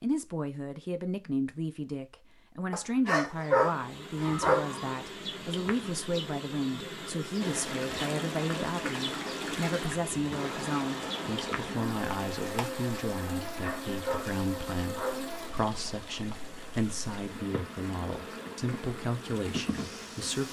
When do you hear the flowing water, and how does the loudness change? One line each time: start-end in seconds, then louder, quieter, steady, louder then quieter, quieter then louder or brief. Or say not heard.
7.4-20.4 quieter.